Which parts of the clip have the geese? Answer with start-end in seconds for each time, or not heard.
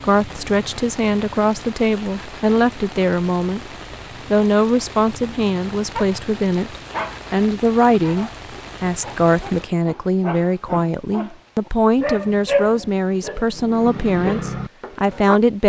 not heard.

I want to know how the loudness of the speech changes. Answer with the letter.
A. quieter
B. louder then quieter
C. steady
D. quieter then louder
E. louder
C.